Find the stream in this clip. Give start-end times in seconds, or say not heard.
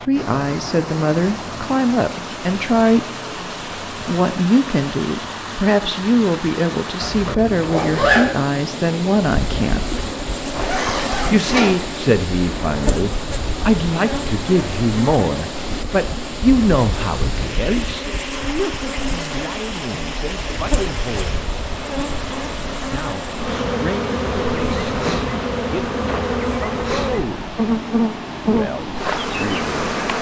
0.0-30.1.